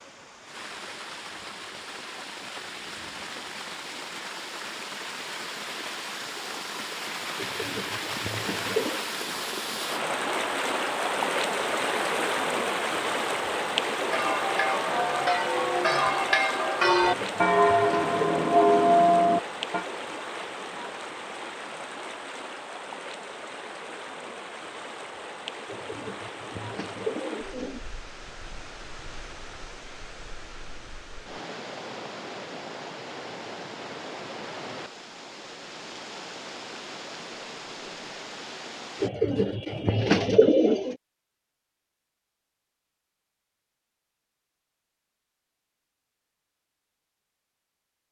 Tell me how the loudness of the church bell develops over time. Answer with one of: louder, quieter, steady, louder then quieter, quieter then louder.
louder.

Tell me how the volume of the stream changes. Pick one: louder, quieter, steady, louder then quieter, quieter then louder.
louder then quieter.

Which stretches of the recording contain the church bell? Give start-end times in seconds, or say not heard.
13.9-19.9.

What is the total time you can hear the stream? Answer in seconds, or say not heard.
39 s.